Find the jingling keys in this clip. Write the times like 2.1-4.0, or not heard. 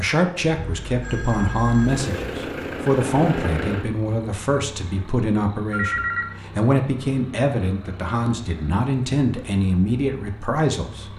not heard.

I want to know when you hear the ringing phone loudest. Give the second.
6 s.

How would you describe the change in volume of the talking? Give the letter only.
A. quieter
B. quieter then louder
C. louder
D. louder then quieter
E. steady
E.